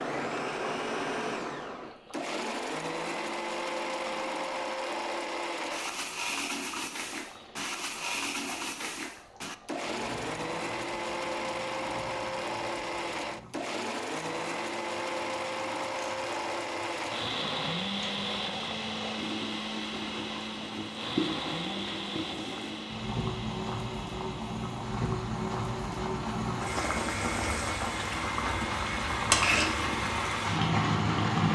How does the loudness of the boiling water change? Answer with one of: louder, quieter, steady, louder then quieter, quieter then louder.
louder.